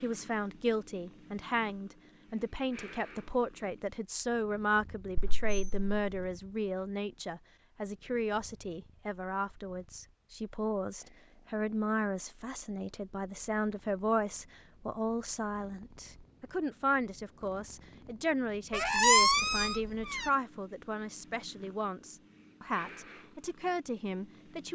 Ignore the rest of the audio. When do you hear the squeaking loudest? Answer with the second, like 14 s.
19 s.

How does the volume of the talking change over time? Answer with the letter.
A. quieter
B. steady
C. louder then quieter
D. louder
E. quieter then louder
B.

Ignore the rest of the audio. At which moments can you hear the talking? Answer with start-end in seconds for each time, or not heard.
0.0-24.7.